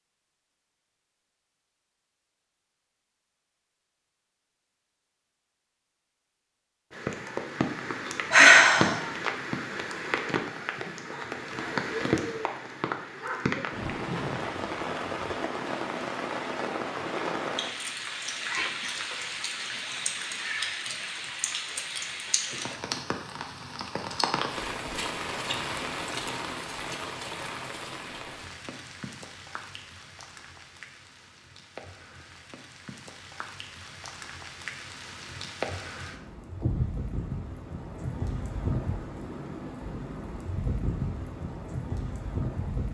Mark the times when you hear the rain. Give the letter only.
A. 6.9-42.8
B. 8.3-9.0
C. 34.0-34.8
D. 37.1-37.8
A.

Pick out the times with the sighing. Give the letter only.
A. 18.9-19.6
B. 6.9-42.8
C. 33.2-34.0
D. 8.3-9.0
D.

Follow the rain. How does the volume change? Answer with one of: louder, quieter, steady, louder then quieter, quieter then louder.
quieter then louder.